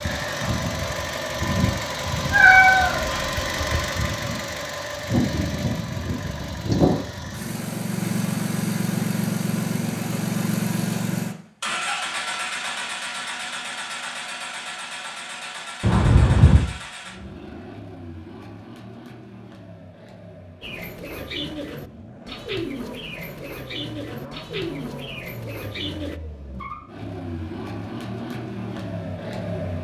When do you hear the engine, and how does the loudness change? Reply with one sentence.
The engine can be heard from 0.0 to 29.7 s, getting quieter then louder.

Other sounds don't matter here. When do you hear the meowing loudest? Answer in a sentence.
The volume of the meowing peaks at 3 seconds.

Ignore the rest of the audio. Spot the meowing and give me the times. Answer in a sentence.
The meowing can be heard from 2.3 to 3.8 s and from 15.8 to 16.6 s.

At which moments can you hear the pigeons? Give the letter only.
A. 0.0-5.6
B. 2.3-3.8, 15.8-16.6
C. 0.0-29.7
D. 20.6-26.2
D.